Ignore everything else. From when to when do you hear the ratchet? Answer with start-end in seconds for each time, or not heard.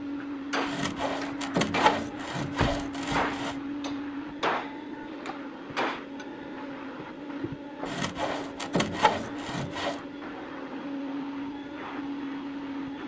not heard.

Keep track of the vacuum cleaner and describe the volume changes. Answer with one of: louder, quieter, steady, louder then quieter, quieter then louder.
steady.